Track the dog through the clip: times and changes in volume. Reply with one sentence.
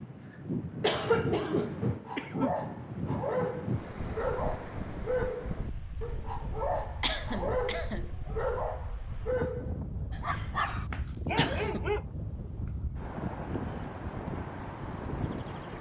The dog can be heard from 1.1 to 12.1 s, at a steady volume.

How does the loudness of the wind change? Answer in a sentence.
The volume of the wind goes down, then up.